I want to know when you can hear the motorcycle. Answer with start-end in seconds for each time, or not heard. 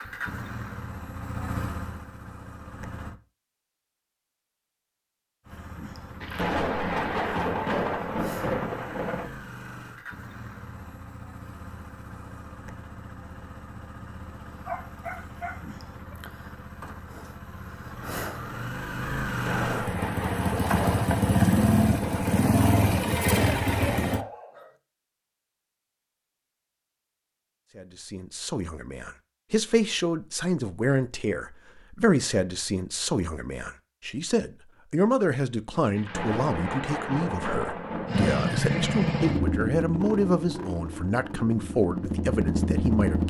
0.0-3.1, 5.5-24.2, 38.0-43.2.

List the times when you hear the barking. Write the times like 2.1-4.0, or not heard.
14.7-16.2, 23.9-24.8.